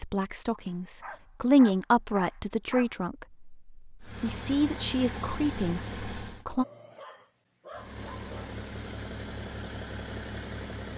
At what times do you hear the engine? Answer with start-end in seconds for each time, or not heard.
4.0-6.5, 7.7-10.9.